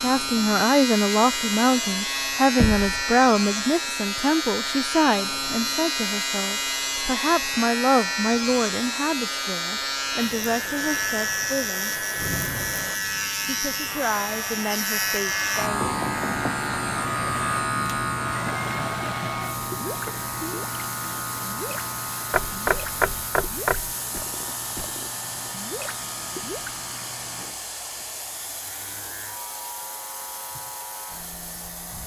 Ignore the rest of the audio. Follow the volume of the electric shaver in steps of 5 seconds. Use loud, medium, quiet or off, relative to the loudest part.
loud, loud, loud, loud, medium, quiet, quiet.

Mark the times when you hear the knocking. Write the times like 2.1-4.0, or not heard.
2.5-3.0, 15.8-16.6, 22.3-23.9.